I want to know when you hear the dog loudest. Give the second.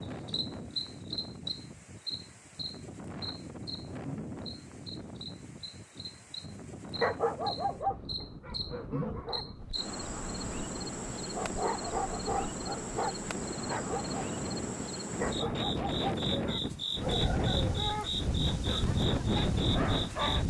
7 s.